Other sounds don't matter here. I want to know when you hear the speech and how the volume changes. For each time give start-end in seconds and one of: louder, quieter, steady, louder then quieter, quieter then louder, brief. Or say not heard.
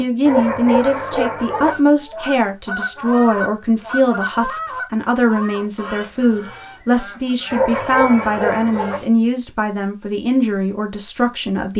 0.0-11.7 steady.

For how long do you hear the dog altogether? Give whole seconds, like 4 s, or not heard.
3 s.